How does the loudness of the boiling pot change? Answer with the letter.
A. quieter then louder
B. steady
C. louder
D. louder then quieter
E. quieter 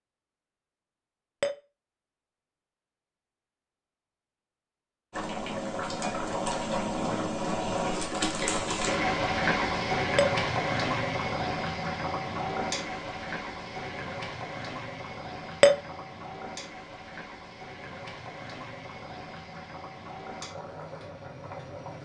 E.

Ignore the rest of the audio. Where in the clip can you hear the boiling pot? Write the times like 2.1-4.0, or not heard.
5.1-22.0.